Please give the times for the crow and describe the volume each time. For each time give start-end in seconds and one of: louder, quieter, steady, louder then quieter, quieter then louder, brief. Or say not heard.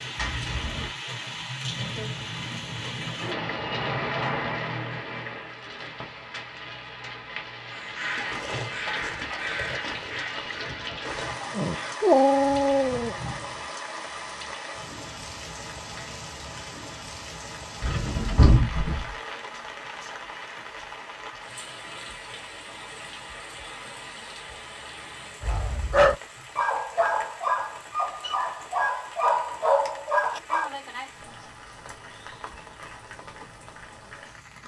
7.7-13.6 quieter.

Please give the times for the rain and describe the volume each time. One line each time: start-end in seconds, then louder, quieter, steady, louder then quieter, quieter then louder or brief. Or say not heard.
0.0-34.6 quieter.